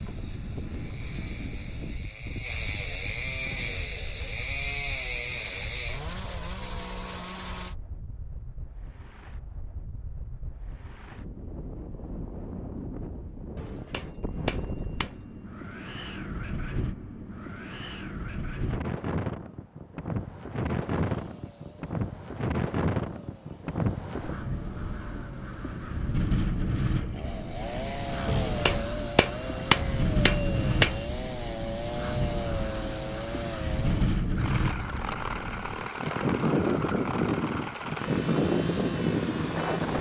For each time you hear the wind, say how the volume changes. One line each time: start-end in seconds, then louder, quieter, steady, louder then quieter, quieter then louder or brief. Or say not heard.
0.0-39.9 louder.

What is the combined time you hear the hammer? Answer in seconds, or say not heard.
4 s.